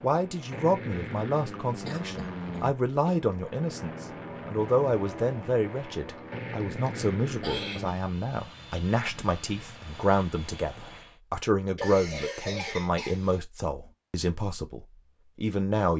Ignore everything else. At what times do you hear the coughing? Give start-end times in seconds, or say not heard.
1.9-3.2, 6.8-7.8, 11.8-13.4.